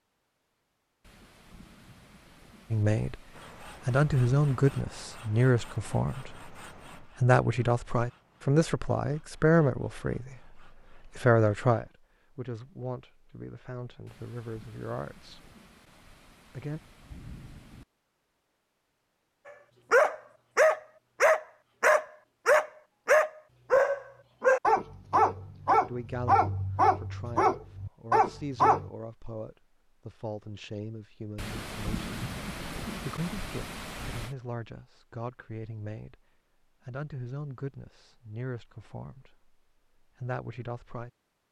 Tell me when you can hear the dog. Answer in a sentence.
You can hear the dog from 19.9 to 28.9 s.